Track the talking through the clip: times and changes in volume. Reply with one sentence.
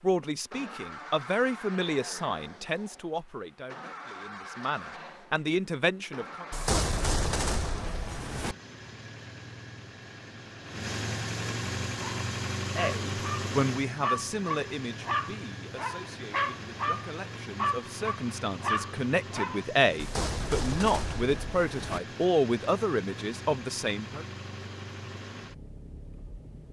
You can hear the talking from 0.0 to 6.5 s, getting quieter then louder; and from 12.8 to 24.2 s, getting quieter then louder.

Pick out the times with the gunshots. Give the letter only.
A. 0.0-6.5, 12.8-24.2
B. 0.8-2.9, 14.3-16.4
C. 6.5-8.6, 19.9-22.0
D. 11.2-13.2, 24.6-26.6
C.